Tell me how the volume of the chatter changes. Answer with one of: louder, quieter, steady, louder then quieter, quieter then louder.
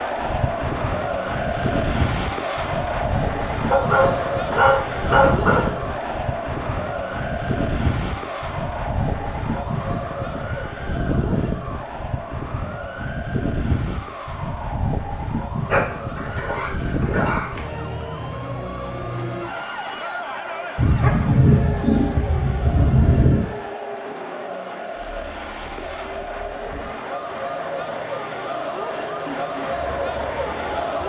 quieter then louder.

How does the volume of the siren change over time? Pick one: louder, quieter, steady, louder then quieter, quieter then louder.
quieter.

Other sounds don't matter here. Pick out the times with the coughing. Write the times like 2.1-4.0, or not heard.
not heard.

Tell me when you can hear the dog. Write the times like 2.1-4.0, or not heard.
3.7-5.7, 15.7-17.6, 20.8-23.4.